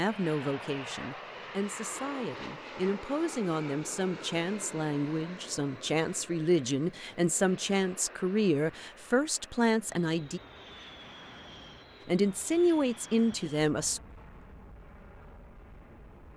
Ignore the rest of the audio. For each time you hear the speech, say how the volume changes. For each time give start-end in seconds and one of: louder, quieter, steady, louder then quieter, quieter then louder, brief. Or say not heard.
0.0-10.4 louder
12.1-14.0 brief.